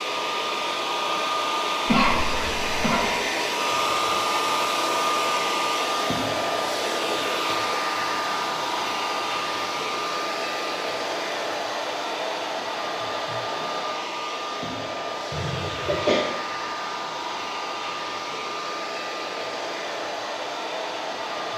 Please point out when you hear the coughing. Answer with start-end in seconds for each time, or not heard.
1.9-3.1, 15.3-16.2.